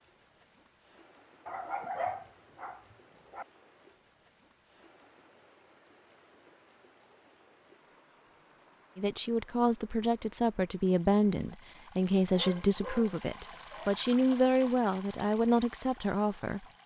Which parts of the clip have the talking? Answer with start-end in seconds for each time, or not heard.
8.9-16.6.